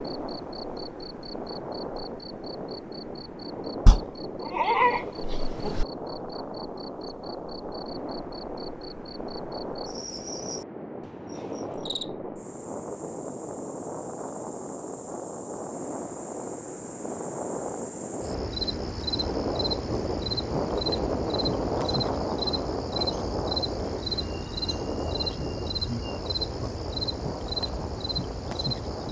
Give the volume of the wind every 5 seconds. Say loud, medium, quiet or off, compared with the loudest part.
medium, medium, medium, loud, loud, medium.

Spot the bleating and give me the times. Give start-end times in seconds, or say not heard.
3.9-5.8.